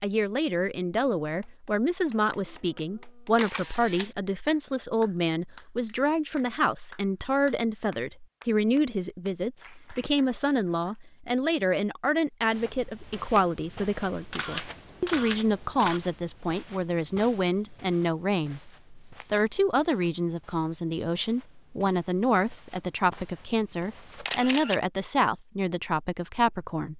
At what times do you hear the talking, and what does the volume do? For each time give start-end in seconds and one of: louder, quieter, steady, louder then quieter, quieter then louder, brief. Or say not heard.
0.0-26.9 steady.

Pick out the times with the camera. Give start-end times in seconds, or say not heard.
3.4-4.1, 14.3-16.0, 24.2-24.8.